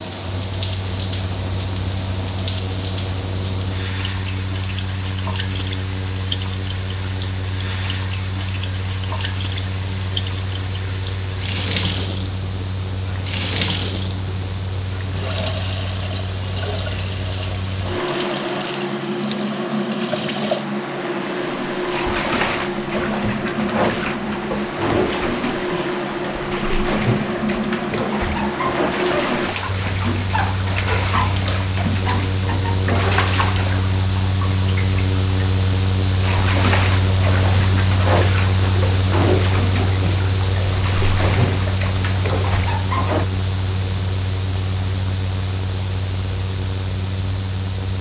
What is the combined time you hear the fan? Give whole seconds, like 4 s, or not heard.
48 s.